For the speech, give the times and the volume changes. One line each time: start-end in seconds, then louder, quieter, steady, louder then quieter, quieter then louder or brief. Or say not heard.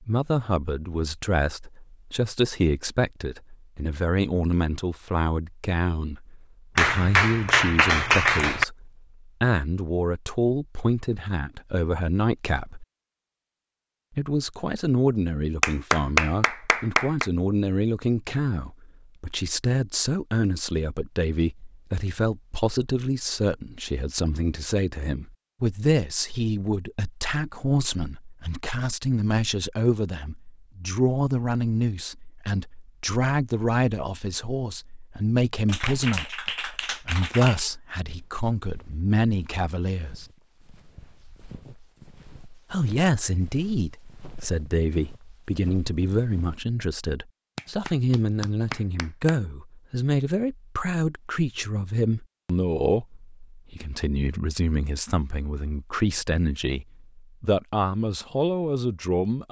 0.0-12.8 steady
14.2-40.2 steady
42.7-59.4 steady.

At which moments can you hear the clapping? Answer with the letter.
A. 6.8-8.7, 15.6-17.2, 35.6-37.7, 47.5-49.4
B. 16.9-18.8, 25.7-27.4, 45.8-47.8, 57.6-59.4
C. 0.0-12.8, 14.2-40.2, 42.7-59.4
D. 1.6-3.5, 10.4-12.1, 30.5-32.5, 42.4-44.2
A.